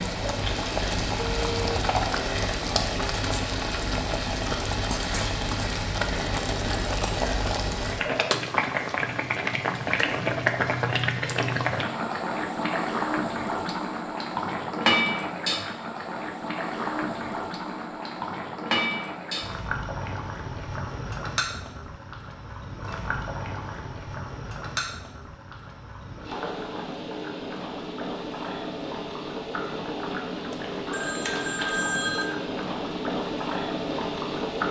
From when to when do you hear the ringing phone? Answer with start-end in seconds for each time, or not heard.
1.1-2.0, 30.5-32.2.